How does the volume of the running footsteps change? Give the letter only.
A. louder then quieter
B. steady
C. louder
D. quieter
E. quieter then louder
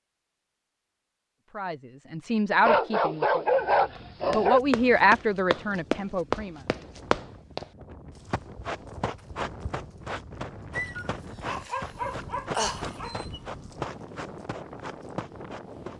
D.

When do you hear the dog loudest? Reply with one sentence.
The volume of the dog peaks at 4 seconds.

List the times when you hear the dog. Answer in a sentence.
You can hear the dog from 2.6 to 4.6 s and from 10.8 to 13.4 s.